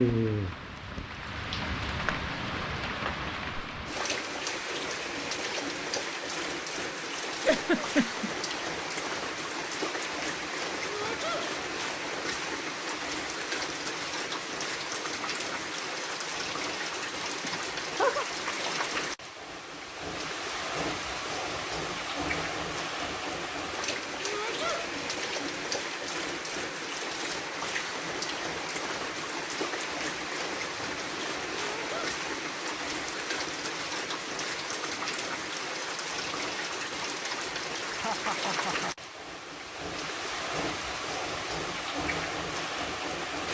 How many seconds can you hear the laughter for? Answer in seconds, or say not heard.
3 s.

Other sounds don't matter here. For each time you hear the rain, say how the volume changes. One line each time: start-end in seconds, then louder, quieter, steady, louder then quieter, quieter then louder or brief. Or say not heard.
0.0-43.5 steady.